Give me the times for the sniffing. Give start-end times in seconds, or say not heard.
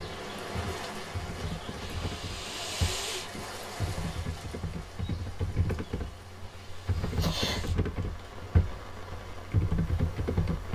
1.8-3.5, 6.5-7.8.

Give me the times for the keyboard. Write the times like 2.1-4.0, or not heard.
0.0-10.6.